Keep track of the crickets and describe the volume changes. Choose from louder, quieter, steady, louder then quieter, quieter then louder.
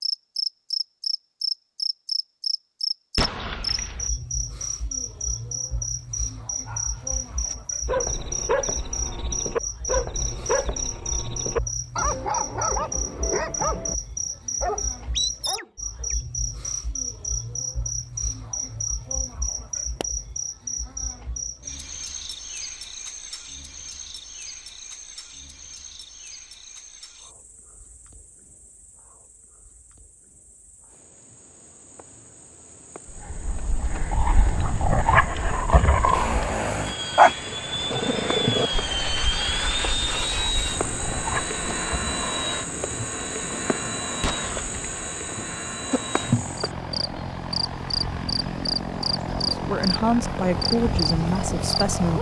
quieter then louder.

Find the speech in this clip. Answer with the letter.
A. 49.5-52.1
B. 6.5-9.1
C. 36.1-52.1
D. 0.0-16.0
A.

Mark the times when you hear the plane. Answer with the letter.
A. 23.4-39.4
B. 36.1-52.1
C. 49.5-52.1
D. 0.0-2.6
B.